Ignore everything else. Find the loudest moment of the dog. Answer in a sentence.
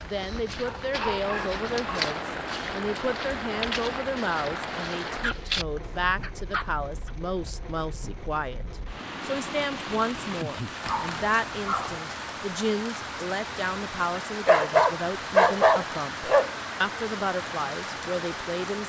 The loudest moment of the dog is at 16 seconds.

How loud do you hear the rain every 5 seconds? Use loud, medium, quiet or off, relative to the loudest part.
loud, medium, loud, loud.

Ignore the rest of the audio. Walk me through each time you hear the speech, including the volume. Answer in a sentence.
The speech can be heard from 0.1 to 18.8 s, at a steady volume.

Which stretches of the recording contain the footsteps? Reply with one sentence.
You can hear the footsteps from 0.0 to 6.0 s.